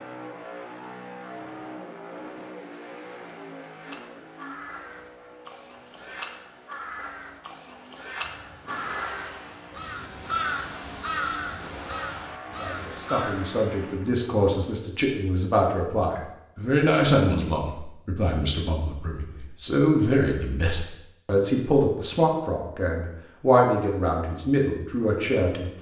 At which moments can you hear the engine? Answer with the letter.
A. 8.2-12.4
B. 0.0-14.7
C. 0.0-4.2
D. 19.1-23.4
B.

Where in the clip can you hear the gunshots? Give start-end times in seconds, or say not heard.
8.2-12.4.